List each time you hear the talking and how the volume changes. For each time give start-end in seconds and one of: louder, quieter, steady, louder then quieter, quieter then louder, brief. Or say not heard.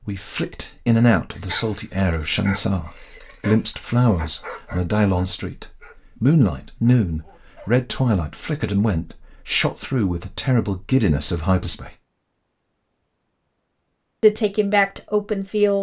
0.1-11.9 steady
14.2-15.7 brief.